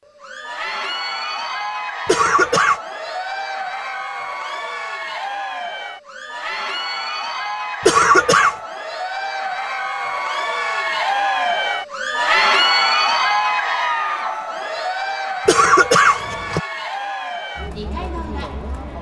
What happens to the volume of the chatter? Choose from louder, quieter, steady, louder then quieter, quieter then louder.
louder then quieter.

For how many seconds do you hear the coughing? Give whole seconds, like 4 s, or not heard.
3 s.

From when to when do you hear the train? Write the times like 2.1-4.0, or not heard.
not heard.